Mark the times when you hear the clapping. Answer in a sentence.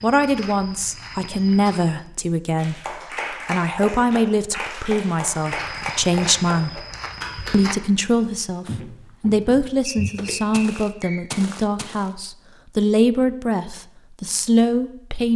The clapping can be heard from 2.5 to 7.6 s.